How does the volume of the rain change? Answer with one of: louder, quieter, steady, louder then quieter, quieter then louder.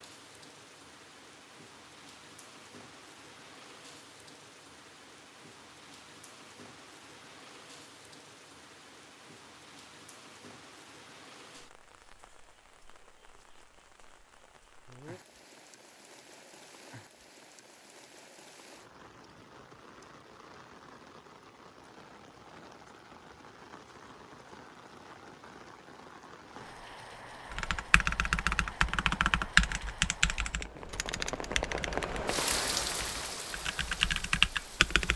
louder.